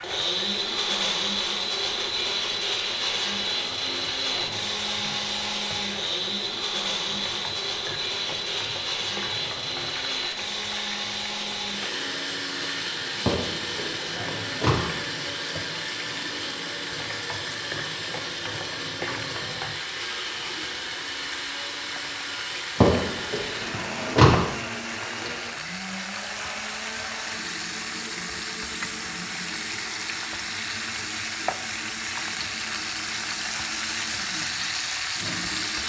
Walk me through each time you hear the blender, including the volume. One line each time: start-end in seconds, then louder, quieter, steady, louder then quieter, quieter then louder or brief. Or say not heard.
0.0-35.8 quieter.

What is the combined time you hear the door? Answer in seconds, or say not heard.
3 s.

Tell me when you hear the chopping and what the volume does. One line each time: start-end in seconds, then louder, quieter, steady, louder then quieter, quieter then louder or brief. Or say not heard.
not heard.